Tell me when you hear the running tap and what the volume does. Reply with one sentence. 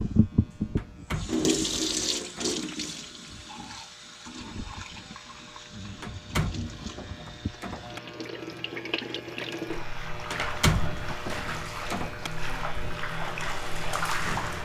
The running tap can be heard from 0.0 to 14.6 s, getting quieter then louder.